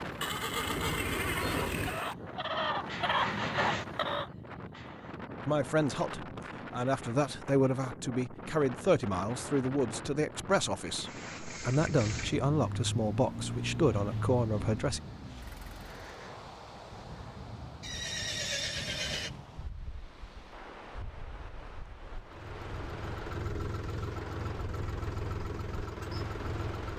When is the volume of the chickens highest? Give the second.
3 s.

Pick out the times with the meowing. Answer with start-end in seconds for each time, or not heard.
not heard.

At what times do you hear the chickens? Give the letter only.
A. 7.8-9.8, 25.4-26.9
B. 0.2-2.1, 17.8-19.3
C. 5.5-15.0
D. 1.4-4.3
D.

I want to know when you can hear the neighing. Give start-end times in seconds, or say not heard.
0.2-2.1, 17.8-19.3.